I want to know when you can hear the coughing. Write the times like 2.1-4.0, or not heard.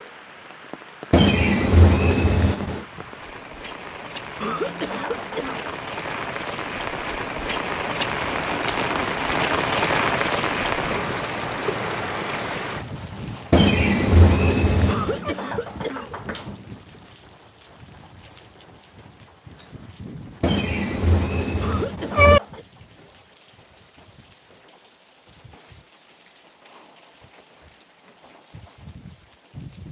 4.3-5.7, 14.8-16.6, 21.6-22.6.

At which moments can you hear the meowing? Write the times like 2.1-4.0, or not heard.
1.1-2.9, 13.5-15.3, 20.4-22.4.